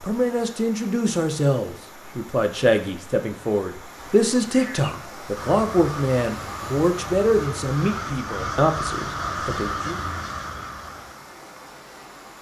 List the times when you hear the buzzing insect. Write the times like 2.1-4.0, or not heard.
not heard.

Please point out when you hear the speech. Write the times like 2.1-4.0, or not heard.
0.0-10.0.